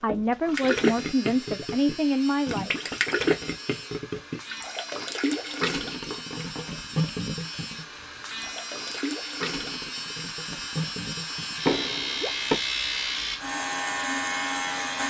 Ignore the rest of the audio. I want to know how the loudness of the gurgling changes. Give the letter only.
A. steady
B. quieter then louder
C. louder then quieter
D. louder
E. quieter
E.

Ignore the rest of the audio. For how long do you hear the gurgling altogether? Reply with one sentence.
You can hear the gurgling for 12 seconds altogether.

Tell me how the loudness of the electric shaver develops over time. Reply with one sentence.
The loudness of the electric shaver goes up.